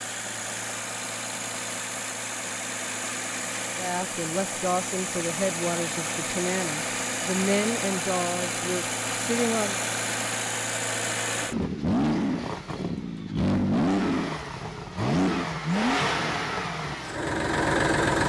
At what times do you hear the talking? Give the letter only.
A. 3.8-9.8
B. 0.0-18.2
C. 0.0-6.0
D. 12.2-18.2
A.